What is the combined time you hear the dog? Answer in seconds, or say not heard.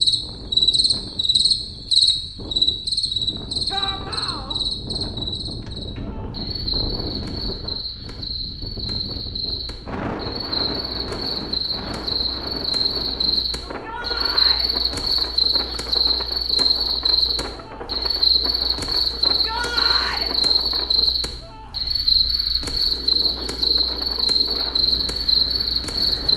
not heard.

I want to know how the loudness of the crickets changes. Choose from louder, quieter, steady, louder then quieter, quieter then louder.
quieter then louder.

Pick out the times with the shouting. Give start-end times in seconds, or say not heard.
3.7-4.5, 13.6-14.7, 19.2-20.3.